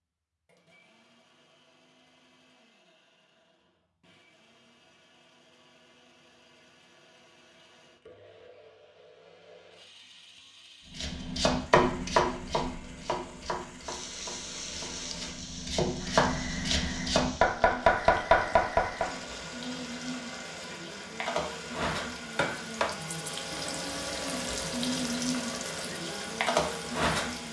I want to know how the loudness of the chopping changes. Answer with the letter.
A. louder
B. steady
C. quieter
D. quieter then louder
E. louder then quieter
D.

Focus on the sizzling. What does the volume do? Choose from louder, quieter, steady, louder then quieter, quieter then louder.
louder.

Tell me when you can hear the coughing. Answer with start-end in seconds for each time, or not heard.
not heard.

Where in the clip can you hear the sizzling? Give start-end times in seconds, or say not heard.
13.8-27.4.